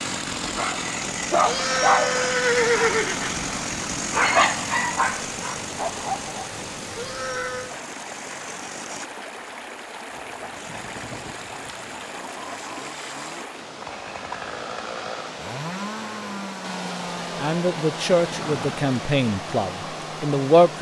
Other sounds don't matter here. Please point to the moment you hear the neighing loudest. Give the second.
3 s.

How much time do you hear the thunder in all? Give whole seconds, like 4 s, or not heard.
2 s.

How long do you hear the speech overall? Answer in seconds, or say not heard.
3 s.